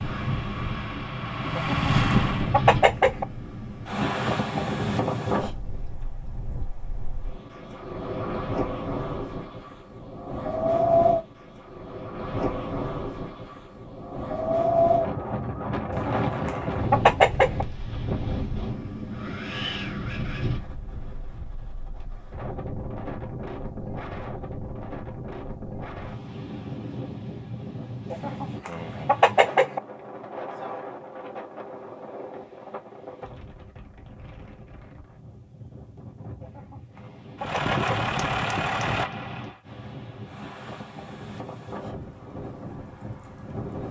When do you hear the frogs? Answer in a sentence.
You can't hear the frogs here.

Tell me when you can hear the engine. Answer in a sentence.
You can hear the engine from 0.0 to 2.6 s and from 37.4 to 39.6 s.